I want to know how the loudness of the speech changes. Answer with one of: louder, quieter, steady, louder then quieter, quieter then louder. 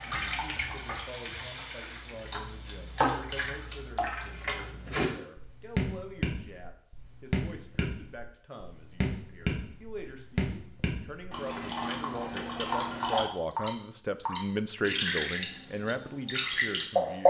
louder.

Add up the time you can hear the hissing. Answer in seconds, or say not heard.
3 s.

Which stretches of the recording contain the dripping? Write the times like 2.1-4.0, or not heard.
0.0-17.2.